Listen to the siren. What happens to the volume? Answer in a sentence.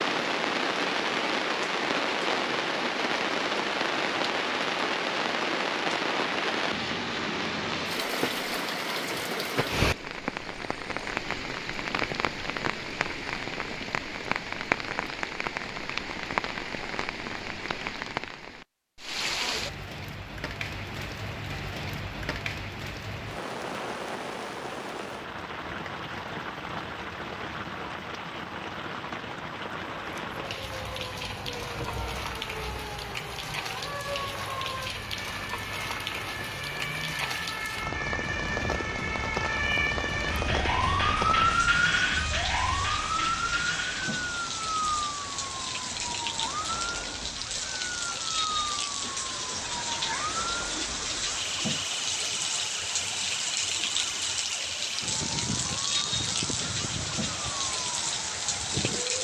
The volume of the siren goes up, then down.